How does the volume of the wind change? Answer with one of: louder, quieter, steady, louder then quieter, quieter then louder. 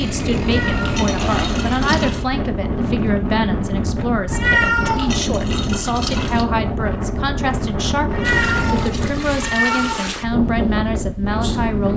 steady.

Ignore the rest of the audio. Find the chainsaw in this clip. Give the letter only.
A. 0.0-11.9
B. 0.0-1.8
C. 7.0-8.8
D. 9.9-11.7
B.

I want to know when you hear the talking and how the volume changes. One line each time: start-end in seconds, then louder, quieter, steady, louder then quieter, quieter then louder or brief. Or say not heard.
0.0-11.9 steady.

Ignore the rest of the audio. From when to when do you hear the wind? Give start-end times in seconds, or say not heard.
0.0-11.9.